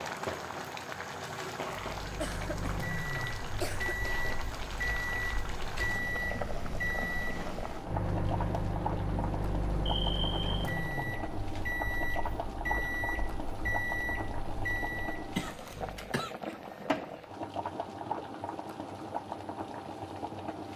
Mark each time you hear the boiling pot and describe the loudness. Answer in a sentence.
The boiling pot can be heard from 0.0 to 20.7 s, at a steady volume.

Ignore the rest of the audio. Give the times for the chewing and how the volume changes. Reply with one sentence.
You can't hear the chewing here.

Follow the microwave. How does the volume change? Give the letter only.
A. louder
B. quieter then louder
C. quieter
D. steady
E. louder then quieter
D.